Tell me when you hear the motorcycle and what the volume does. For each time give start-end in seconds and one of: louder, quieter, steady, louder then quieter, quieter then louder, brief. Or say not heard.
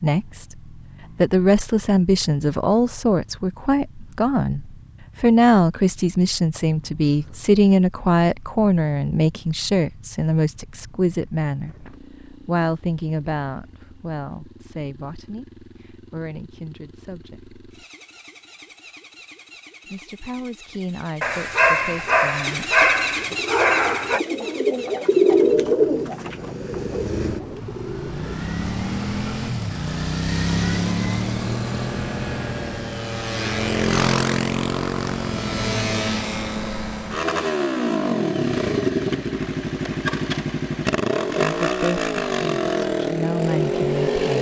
0.0-44.3 louder.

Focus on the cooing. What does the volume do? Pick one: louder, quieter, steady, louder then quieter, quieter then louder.
louder then quieter.